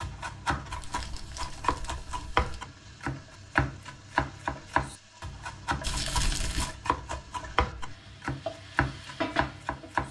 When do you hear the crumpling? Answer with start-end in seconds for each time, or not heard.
0.7-2.4, 5.8-6.8.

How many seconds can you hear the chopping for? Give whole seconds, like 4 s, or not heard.
10 s.